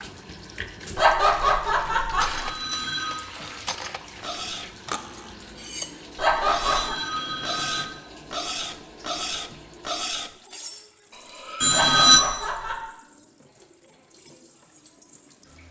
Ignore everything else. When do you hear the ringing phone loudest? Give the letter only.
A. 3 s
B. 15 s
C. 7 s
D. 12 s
D.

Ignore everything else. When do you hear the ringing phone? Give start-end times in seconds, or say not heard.
2.2-3.2, 6.2-7.9, 11.6-12.2.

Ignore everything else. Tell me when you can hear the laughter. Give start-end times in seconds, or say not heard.
0.9-2.5, 6.2-7.0, 11.7-12.8.